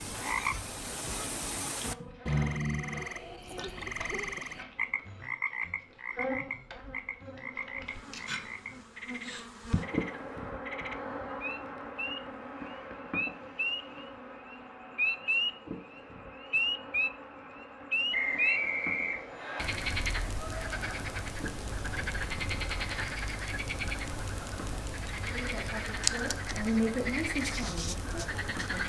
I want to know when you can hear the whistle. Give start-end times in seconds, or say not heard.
18.1-19.6.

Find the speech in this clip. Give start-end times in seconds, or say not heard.
25.2-28.8.